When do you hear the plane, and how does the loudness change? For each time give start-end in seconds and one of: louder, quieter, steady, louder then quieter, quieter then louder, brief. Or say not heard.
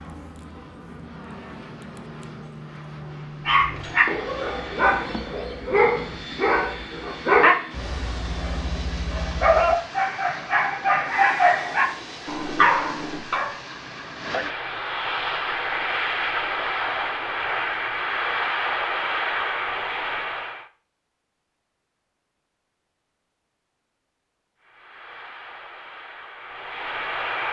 0.0-20.7 louder
24.6-27.4 brief.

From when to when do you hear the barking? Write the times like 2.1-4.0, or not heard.
3.5-13.6.